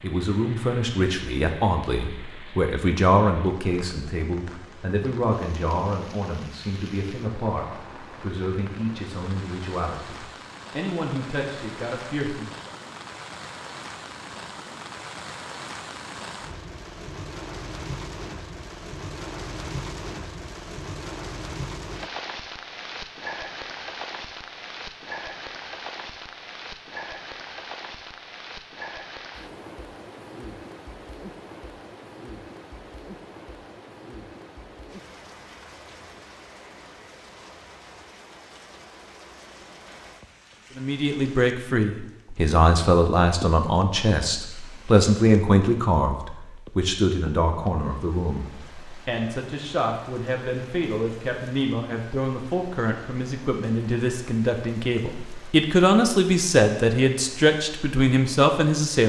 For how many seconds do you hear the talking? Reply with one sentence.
The talking can be heard for 31 seconds in total.